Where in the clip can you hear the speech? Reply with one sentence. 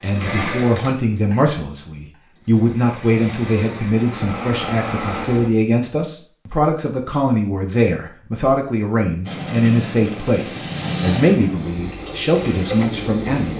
You can hear the speech from 0.0 to 13.5 s.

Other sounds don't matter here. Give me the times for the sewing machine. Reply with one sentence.
You can hear the sewing machine from 0.0 to 5.5 s and from 9.2 to 13.5 s.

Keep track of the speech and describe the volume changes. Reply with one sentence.
The volume of the speech stays about the same.